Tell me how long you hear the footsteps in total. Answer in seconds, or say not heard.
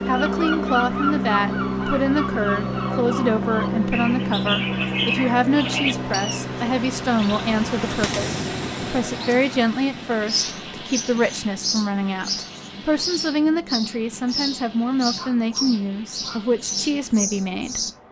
not heard.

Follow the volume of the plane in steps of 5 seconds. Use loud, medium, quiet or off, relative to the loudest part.
loud, medium, quiet, quiet.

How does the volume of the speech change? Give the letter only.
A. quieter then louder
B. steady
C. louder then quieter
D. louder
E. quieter
B.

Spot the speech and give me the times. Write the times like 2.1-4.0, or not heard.
0.1-18.0.